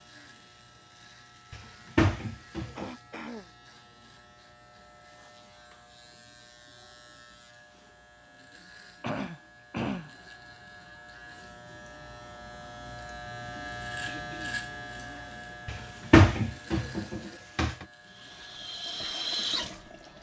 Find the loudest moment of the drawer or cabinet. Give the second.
16 s.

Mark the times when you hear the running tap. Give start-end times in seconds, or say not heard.
18.0-20.1.